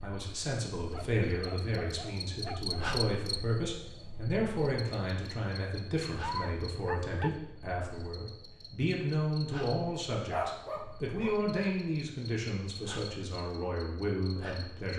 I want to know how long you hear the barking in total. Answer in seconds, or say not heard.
4 s.